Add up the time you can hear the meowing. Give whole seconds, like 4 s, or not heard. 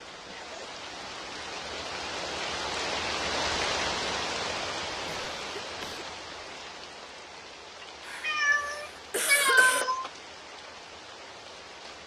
2 s.